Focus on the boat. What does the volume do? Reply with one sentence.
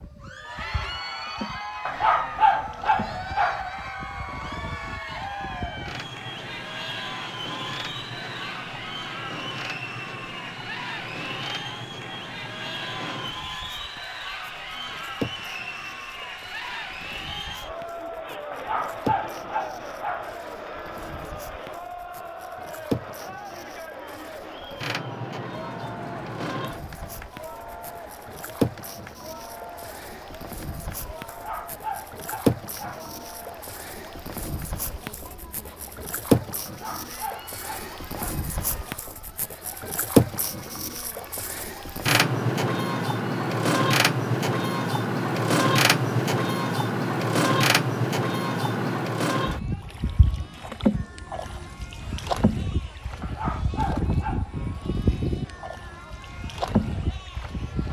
The loudness of the boat goes up.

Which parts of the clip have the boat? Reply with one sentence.
You can hear the boat from 0.0 to 57.8 s.